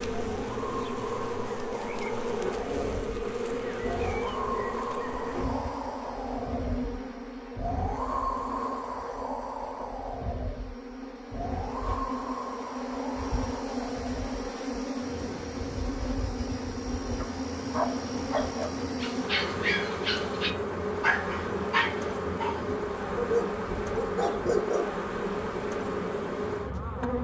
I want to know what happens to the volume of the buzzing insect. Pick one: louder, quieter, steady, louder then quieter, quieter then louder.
quieter then louder.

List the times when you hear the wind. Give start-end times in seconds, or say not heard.
0.0-26.9.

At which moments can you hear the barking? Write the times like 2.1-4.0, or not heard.
17.1-24.9.